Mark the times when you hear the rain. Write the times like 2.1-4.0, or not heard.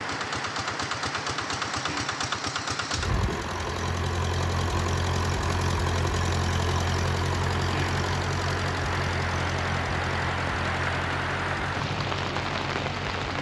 0.0-13.3.